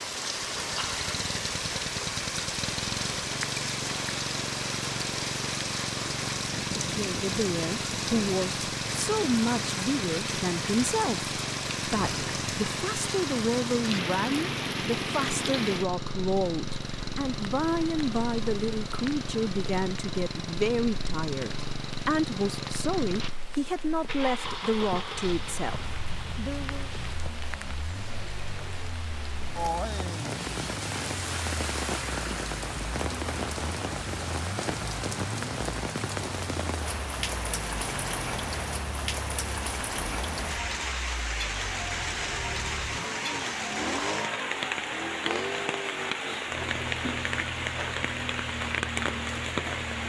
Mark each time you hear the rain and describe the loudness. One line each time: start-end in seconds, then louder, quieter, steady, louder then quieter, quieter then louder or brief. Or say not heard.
0.0-50.0 quieter then louder.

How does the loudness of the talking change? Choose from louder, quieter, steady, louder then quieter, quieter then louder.
steady.